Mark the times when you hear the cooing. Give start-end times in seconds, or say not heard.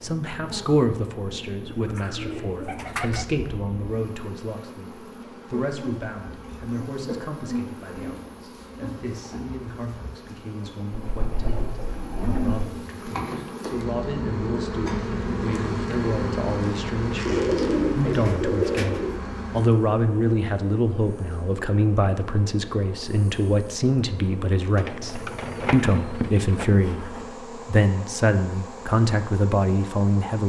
1.7-3.2, 11.2-12.6, 17.2-19.2, 24.8-26.6.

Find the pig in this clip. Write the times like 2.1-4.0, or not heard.
not heard.